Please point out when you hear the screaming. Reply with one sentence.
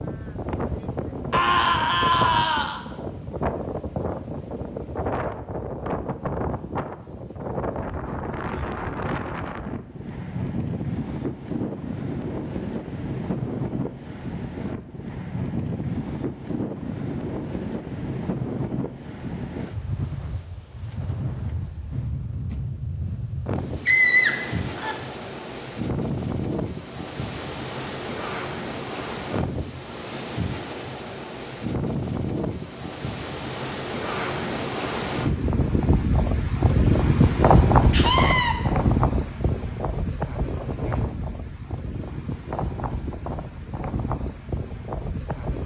You can hear the screaming from 1.3 to 2.8 s, from 23.9 to 24.9 s and from 37.9 to 38.5 s.